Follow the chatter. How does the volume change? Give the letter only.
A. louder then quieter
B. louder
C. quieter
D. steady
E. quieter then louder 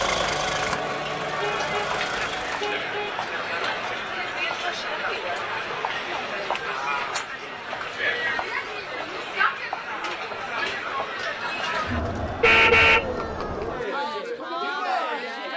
D.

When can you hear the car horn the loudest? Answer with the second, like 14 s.
13 s.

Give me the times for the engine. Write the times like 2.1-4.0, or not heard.
0.0-2.8.